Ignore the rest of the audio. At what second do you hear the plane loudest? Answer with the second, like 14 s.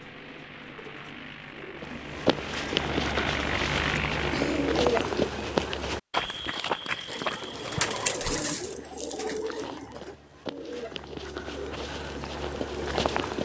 4 s.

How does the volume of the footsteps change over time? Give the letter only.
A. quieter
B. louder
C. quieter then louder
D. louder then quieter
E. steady
C.